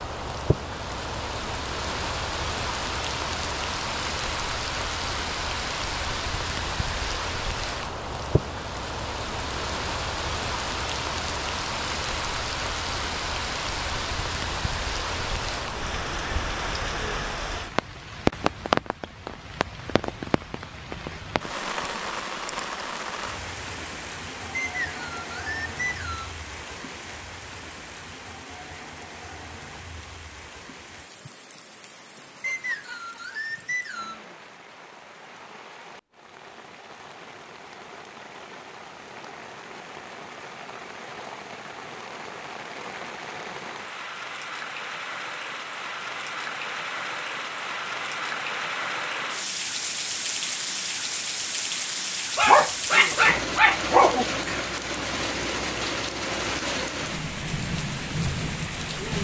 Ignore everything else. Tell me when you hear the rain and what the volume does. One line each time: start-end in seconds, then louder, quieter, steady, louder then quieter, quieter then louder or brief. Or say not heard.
0.0-59.1 quieter then louder.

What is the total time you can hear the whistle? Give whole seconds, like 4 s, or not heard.
4 s.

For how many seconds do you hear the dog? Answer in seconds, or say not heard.
2 s.